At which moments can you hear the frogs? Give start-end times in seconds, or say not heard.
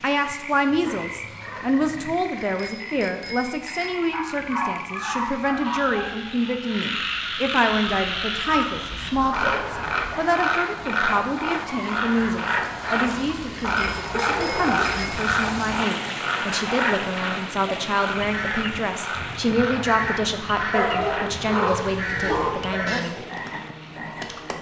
0.2-24.5.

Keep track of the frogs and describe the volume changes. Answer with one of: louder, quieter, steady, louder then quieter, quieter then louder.
louder then quieter.